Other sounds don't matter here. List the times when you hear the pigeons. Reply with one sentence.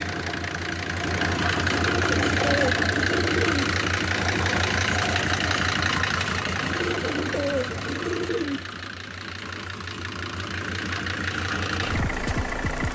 You can hear the pigeons from 1.6 to 3.6 s and from 6.5 to 8.6 s.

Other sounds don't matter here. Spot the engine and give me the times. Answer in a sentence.
You can hear the engine from 0.0 to 12.9 s.